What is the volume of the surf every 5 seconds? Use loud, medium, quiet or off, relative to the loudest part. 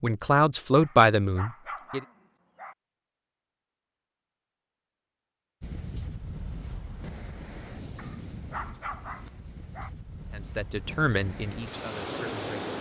off, medium, loud.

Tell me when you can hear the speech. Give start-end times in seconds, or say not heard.
0.0-2.0, 10.3-12.7.